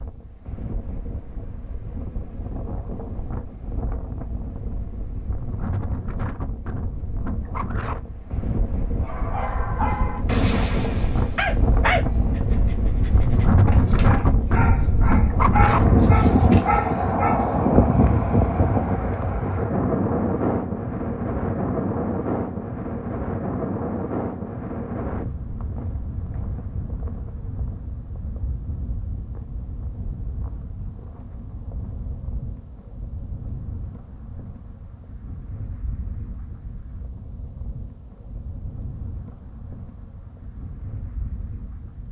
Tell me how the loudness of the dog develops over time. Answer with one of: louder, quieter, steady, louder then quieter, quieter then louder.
quieter then louder.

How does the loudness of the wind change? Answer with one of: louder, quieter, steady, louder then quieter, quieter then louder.
louder then quieter.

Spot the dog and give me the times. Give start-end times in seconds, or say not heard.
9.0-17.4.